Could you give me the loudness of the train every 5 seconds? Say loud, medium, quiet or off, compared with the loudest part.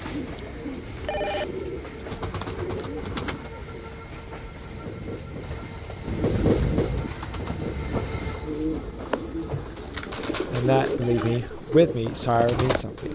medium, loud, medium.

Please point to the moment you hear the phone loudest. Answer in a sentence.
The loudest moment of the phone is at 1 second.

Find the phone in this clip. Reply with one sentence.
You can hear the phone from 0.9 to 1.4 s and from 10.9 to 11.4 s.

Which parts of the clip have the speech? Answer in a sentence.
The speech can be heard from 10.4 to 13.0 s.